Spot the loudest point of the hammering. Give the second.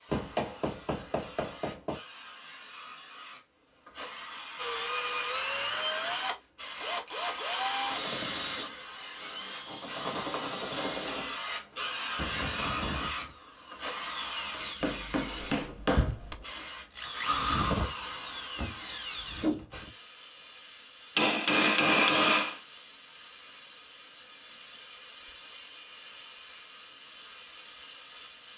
22 s.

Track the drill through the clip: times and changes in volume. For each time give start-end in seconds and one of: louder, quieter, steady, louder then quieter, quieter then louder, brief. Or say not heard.
4.5-19.9 quieter then louder.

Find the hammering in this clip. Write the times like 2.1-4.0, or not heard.
0.1-2.0, 14.8-16.4, 21.1-22.6.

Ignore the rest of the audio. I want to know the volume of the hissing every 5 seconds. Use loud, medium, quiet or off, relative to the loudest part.
medium, medium, loud, medium, medium, medium.